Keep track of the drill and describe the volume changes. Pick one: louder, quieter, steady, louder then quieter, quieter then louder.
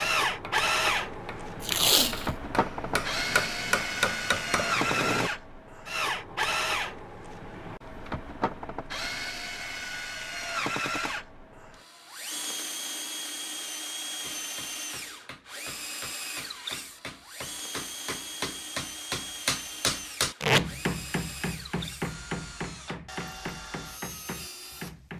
quieter.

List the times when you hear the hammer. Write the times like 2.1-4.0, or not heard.
0.2-5.3, 14.2-25.1.